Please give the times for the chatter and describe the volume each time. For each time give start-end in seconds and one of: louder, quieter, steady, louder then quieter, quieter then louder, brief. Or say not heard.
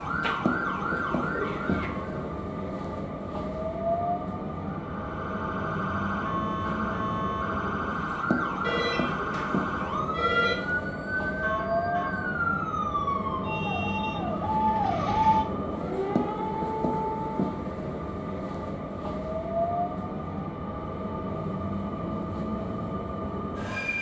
not heard.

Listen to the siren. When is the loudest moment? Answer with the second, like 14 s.
15 s.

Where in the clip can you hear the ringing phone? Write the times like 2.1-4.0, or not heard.
8.6-10.6.